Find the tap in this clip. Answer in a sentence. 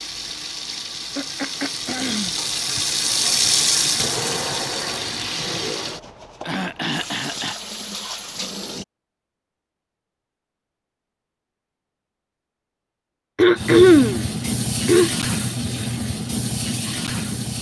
The tap can be heard from 0.0 to 8.8 s and from 13.6 to 17.5 s.